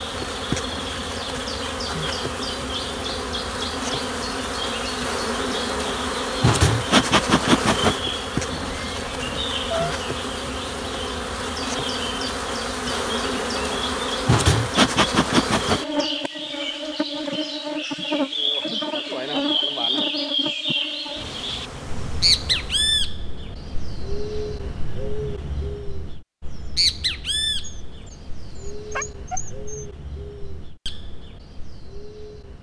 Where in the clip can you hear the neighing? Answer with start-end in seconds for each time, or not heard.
8.4-9.9.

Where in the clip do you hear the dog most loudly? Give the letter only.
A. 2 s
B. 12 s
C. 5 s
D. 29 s
D.